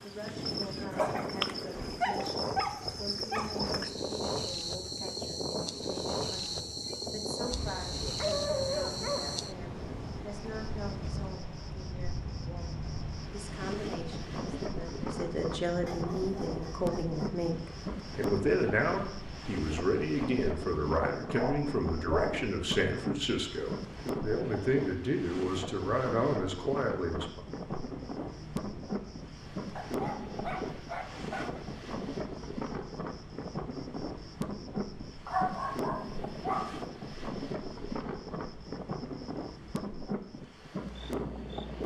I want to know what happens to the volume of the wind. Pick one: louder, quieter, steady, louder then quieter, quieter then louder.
steady.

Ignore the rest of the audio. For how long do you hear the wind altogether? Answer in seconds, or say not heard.
42 s.